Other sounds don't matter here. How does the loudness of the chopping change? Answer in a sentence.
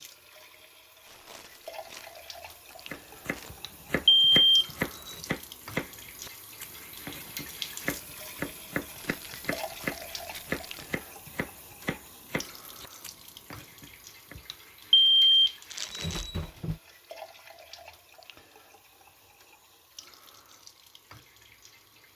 The volume of the chopping goes down.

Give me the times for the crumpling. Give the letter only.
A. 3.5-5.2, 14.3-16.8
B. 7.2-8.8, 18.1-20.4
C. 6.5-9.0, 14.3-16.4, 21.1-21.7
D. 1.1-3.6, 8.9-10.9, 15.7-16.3
D.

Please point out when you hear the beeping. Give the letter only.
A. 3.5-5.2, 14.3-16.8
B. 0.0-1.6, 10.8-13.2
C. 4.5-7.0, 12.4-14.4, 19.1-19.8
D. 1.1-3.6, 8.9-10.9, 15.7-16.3
A.